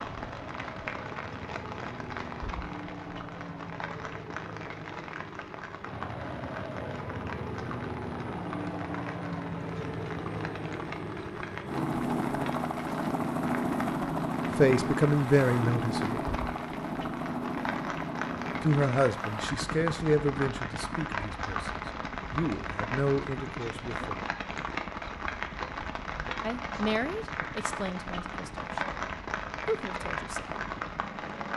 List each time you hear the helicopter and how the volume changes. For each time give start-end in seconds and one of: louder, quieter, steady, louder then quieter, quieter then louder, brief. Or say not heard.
0.0-31.5 louder then quieter.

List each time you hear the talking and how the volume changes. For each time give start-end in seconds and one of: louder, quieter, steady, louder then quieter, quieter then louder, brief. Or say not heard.
14.6-16.2 brief
18.6-24.1 quieter then louder
26.4-30.6 quieter then louder.